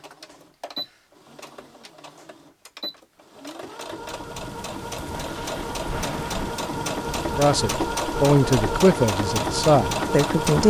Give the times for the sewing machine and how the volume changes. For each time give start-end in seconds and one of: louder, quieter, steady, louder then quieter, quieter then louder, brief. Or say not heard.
0.0-10.6 louder.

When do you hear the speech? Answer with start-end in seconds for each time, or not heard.
7.3-10.6.